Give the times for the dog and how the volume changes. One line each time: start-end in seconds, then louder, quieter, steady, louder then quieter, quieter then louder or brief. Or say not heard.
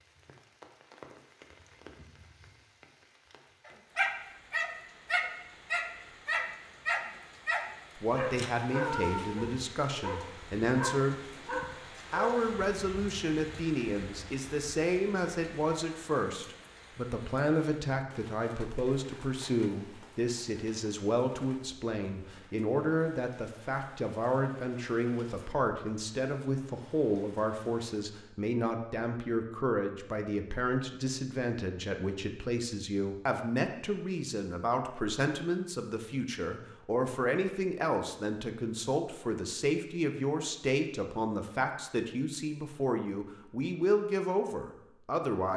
3.6-13.0 quieter.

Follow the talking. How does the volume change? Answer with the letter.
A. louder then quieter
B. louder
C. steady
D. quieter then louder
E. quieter
C.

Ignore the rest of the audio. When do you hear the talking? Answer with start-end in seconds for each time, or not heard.
8.0-11.4, 12.1-45.5.